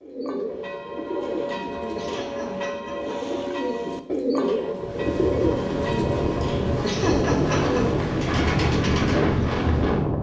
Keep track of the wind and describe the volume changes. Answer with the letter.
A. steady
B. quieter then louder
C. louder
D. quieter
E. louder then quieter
C.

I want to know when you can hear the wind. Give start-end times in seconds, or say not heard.
4.8-10.1.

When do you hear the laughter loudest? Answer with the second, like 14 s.
7 s.